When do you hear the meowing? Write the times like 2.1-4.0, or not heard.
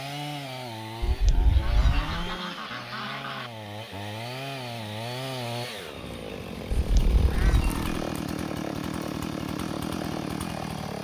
1.0-2.4, 6.8-7.8.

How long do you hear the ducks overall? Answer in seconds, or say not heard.
4 s.